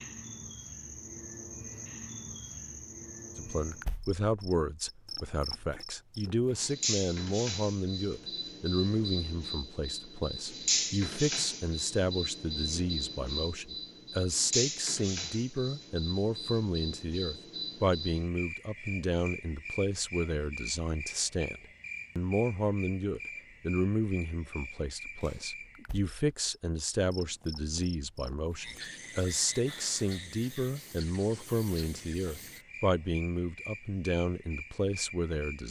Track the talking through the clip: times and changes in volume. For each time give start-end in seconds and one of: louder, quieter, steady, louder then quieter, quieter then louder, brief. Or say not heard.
3.4-35.6 steady.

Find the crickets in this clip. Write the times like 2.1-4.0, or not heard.
0.0-35.6.